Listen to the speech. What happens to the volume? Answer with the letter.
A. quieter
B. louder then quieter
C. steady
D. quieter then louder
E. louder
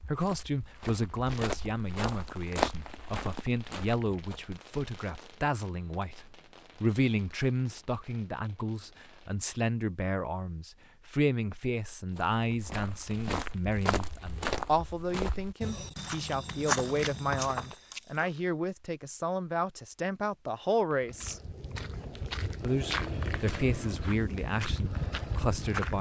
C.